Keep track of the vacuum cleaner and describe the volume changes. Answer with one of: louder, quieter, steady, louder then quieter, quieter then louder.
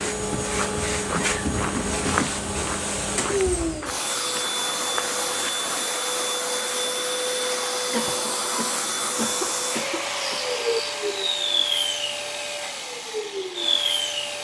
steady.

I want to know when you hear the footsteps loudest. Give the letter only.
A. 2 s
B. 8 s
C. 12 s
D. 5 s
A.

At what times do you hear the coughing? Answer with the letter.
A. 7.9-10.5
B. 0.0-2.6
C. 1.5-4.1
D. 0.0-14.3
A.